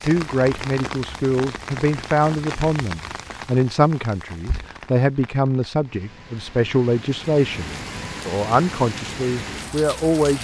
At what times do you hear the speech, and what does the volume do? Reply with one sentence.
You can hear the speech from 0.0 to 10.4 s, at a steady volume.